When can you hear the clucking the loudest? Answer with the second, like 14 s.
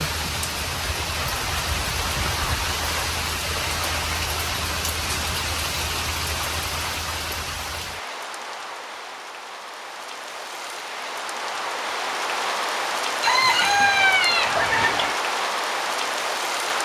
14 s.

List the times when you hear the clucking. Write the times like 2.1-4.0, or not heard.
13.2-15.2.